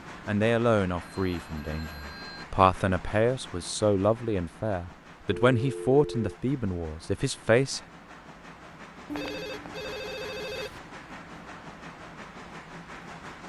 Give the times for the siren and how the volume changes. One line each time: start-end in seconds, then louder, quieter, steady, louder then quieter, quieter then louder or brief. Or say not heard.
not heard.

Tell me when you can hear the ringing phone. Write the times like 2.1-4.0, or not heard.
1.2-2.5, 5.5-6.4, 9.1-10.8.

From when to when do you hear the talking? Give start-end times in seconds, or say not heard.
0.2-7.8.